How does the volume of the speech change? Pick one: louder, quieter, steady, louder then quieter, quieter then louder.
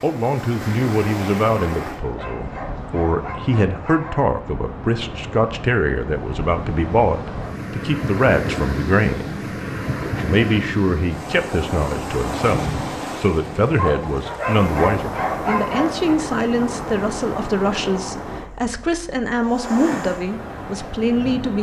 steady.